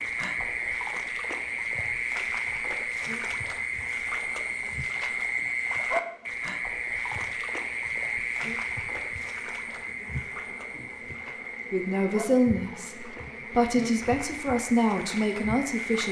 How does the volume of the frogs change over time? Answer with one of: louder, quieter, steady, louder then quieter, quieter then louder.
quieter.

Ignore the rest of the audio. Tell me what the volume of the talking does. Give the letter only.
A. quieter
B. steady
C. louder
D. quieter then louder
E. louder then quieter
D.